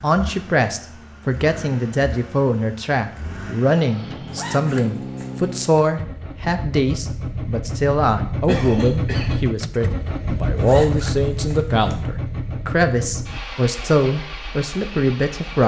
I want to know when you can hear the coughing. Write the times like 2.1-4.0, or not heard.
8.4-9.3.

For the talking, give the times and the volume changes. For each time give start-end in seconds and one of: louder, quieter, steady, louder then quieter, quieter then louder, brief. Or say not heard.
0.0-15.6 steady.